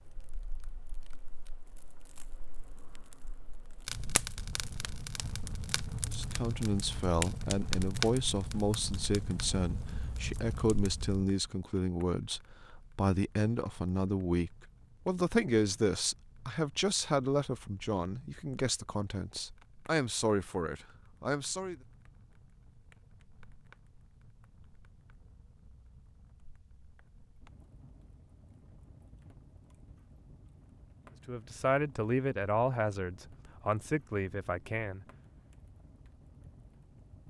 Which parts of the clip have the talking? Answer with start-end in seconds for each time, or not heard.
6.1-21.8, 31.2-35.0.